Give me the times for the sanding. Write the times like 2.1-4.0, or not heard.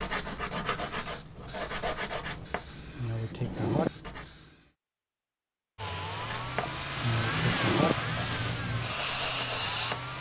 0.0-4.2, 6.2-10.1.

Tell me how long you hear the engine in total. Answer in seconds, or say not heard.
4 s.